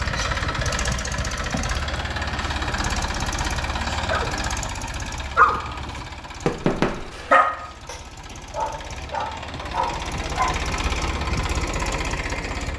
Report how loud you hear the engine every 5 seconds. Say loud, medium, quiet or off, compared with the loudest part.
loud, medium, loud.